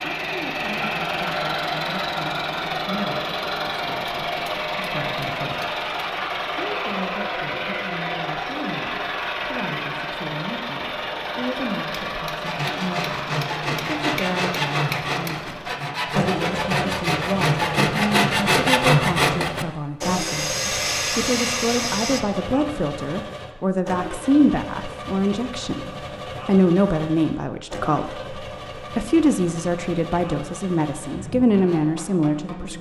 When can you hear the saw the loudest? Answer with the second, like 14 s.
19 s.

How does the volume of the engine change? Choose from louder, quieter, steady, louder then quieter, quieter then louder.
quieter.